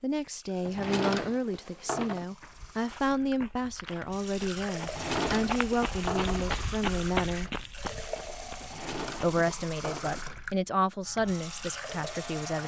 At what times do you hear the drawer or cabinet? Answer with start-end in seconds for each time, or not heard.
0.7-2.2, 4.8-6.6, 8.6-10.3.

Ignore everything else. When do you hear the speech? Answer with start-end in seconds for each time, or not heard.
0.0-7.5, 9.2-12.6.